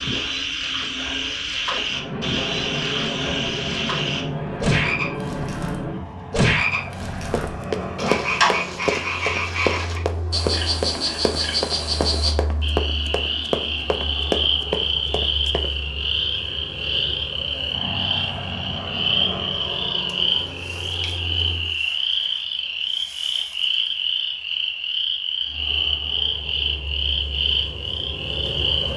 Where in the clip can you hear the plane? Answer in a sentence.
The plane can be heard from 1.9 to 21.8 s and from 25.4 to 28.9 s.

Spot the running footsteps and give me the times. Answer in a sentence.
The running footsteps can be heard from 7.3 to 15.7 s.